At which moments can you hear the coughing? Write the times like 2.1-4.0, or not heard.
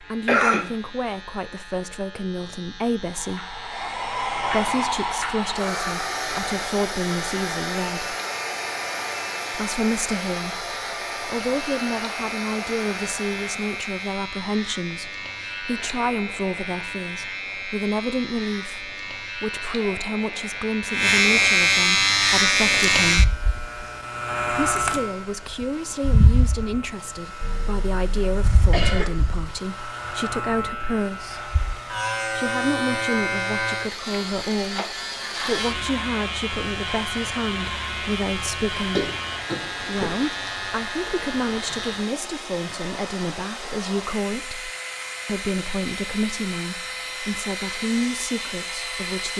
0.2-0.7, 27.4-29.4, 38.8-40.3.